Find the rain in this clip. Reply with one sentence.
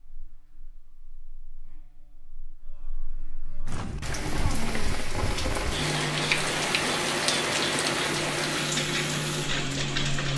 The rain can be heard from 3.6 to 10.3 s.